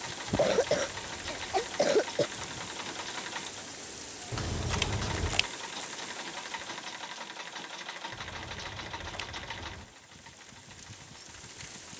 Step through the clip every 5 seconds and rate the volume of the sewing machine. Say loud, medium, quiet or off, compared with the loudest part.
loud, loud, quiet.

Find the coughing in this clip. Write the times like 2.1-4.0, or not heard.
0.2-2.3.